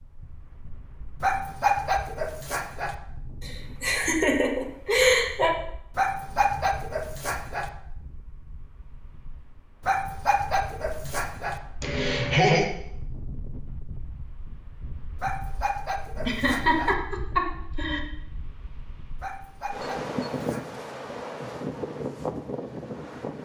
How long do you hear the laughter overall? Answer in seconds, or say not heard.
5 s.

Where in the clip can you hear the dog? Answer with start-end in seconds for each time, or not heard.
1.2-3.0, 6.0-7.7, 9.8-11.6, 15.2-16.9, 19.2-20.8.